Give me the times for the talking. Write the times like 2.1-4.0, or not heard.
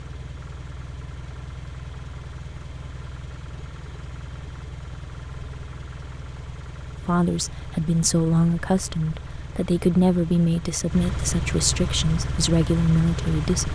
7.0-13.6.